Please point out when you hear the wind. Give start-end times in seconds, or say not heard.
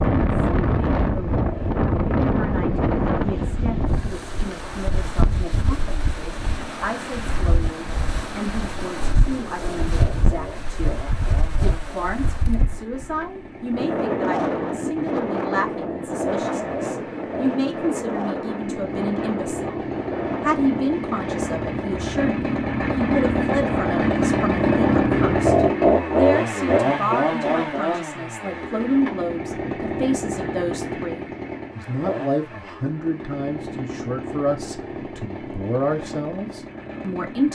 0.0-25.6.